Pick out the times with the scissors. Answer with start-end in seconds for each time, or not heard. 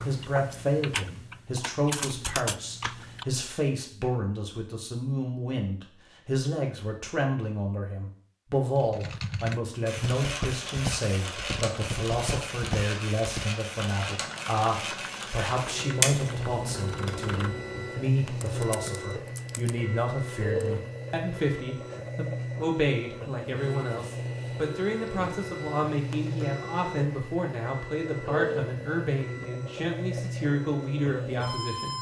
16.0-17.9.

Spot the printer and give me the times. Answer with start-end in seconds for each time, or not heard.
9.8-31.9.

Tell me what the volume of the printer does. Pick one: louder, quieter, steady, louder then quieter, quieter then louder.
steady.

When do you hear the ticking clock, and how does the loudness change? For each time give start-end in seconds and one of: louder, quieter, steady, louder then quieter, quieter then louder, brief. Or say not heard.
not heard.